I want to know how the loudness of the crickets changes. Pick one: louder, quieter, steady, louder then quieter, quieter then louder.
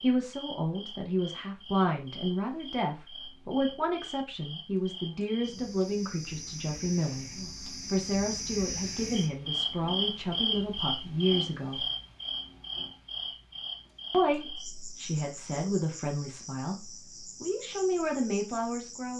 louder then quieter.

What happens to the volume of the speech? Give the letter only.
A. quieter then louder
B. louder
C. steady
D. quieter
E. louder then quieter
C.